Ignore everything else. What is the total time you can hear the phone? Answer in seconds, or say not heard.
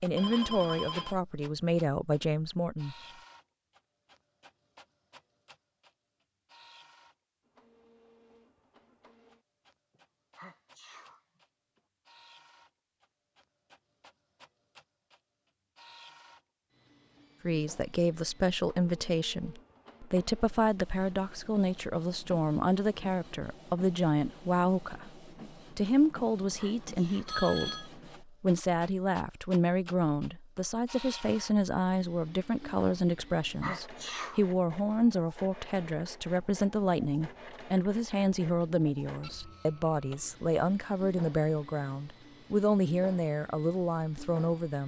2 s.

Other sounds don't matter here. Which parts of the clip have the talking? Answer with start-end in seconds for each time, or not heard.
0.0-3.0, 17.4-44.8.